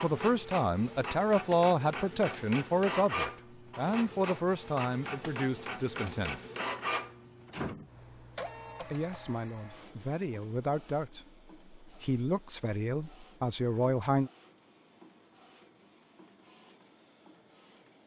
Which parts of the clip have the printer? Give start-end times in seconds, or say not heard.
0.0-18.0.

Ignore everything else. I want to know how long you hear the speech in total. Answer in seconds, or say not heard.
12 s.